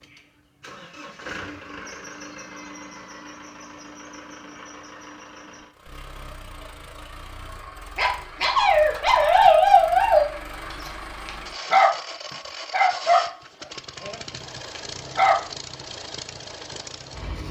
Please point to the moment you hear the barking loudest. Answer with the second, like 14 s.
10 s.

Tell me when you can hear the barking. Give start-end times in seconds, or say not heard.
8.0-10.2, 10.8-11.9, 12.7-14.2, 14.8-15.3.